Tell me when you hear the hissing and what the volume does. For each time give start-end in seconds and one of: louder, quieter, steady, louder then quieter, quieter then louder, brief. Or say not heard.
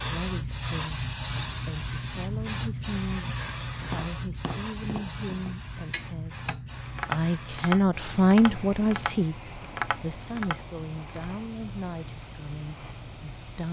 0.0-13.6 quieter.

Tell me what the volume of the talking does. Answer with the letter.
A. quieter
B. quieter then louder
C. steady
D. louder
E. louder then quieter
E.